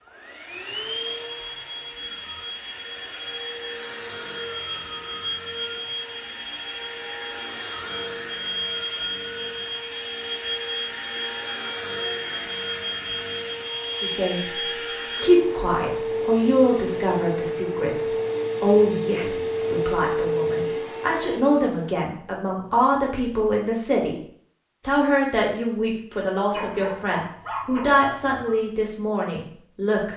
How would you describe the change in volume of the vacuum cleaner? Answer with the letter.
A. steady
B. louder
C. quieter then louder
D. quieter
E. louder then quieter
B.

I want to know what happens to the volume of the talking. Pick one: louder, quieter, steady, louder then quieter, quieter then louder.
steady.